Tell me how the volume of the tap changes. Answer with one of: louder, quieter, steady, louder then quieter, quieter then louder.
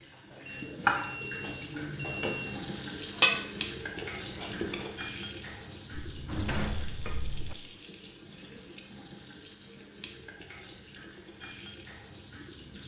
quieter.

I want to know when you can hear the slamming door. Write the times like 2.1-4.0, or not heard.
5.9-7.5.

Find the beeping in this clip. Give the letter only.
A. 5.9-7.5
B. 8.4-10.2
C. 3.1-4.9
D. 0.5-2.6
D.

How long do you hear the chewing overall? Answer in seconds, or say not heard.
2 s.